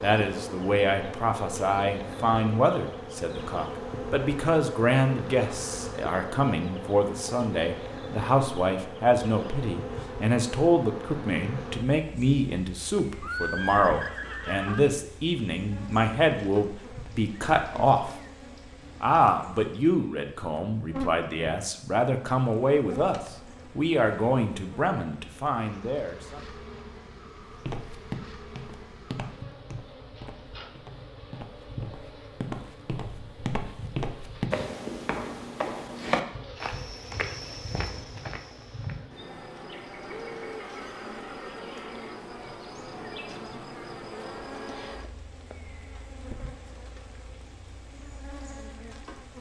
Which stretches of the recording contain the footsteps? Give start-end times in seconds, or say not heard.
27.6-39.0.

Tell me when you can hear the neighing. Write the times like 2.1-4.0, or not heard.
13.2-14.8, 40.0-42.2.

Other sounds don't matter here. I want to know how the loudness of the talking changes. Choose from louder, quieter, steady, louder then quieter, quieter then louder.
steady.